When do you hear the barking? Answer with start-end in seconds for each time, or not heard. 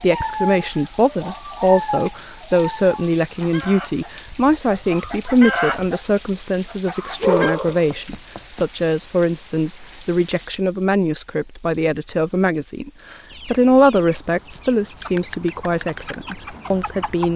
7.2-8.7.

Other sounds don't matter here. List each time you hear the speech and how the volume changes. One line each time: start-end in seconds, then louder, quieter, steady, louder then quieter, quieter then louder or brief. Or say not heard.
0.0-17.3 steady.